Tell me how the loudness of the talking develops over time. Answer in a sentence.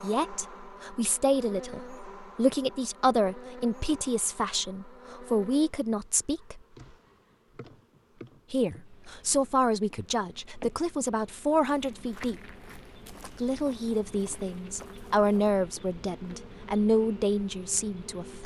The loudness of the talking stays about the same.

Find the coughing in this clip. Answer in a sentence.
The coughing can't be heard in this clip.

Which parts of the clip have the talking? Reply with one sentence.
The talking can be heard from 0.0 to 6.6 s, from 8.5 to 12.5 s and from 13.4 to 18.4 s.